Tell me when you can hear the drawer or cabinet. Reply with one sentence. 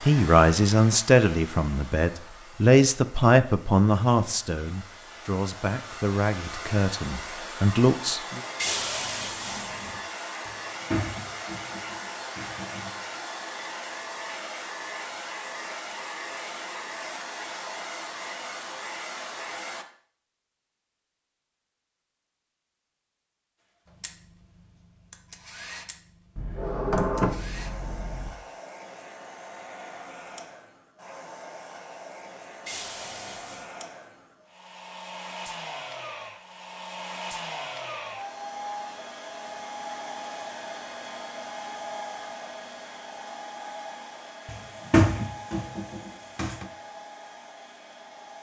The drawer or cabinet can be heard from 10.4 to 12.9 s, from 26.4 to 28.3 s and from 44.5 to 46.6 s.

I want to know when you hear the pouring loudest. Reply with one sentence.
The loudest moment of the pouring is at 9 seconds.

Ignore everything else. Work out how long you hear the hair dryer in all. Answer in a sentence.
You can hear the hair dryer for 44 seconds altogether.